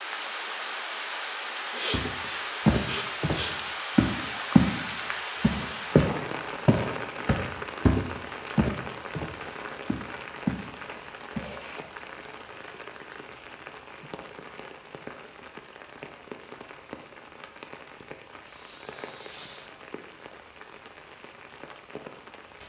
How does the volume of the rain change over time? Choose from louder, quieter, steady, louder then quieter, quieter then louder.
quieter.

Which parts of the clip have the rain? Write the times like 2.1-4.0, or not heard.
0.0-22.6.